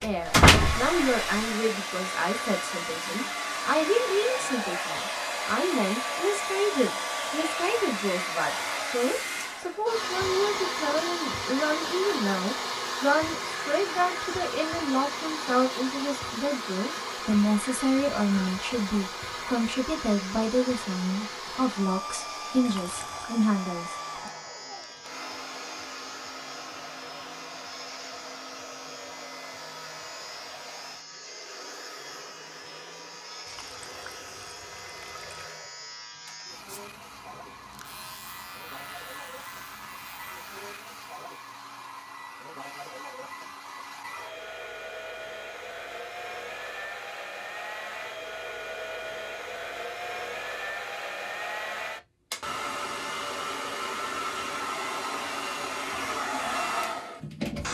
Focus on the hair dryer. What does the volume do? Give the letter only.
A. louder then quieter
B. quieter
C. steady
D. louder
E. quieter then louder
E.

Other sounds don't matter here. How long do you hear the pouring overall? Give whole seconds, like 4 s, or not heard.
3 s.